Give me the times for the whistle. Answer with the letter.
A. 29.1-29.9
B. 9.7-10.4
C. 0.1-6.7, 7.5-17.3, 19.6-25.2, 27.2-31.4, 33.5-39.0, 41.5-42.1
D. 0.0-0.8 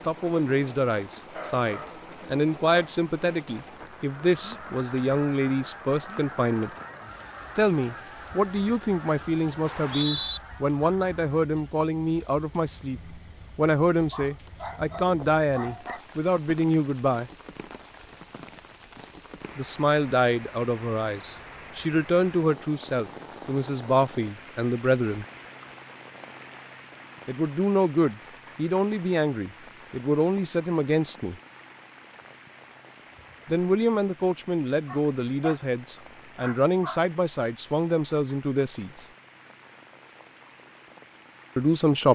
B.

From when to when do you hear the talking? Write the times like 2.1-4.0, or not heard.
0.1-6.7, 7.5-17.3, 19.6-25.2, 27.2-31.4, 33.5-39.0, 41.5-42.1.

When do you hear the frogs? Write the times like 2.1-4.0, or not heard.
not heard.